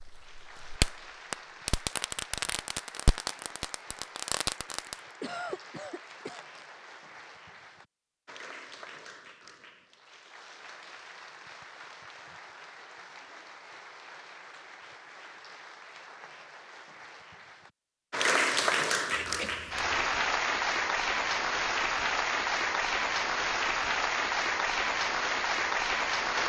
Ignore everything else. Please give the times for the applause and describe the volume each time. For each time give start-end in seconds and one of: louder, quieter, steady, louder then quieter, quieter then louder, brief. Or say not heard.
0.0-26.4 louder.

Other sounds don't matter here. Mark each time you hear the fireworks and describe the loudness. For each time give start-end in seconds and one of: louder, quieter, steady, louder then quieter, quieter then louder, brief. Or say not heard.
0.0-5.0 steady.